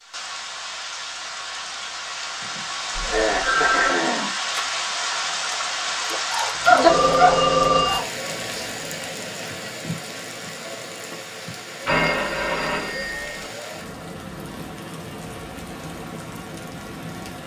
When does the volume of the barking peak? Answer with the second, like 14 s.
7 s.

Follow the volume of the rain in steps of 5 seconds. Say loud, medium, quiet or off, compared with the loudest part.
loud, loud, medium, medium.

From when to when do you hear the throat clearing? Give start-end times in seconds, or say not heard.
2.4-4.3.